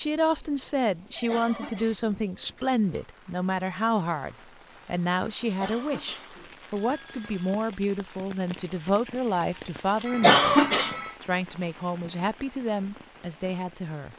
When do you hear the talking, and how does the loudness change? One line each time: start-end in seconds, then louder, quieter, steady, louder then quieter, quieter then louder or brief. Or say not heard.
0.0-10.6 steady
11.2-14.1 brief.